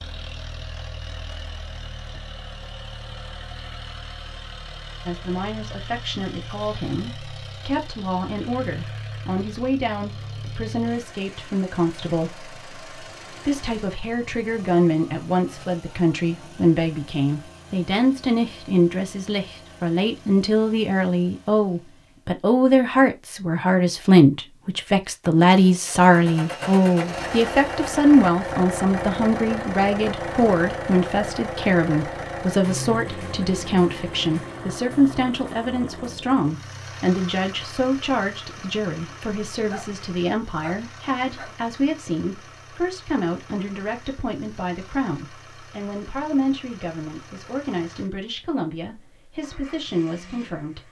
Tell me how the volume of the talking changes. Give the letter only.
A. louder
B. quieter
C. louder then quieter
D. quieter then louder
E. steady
C.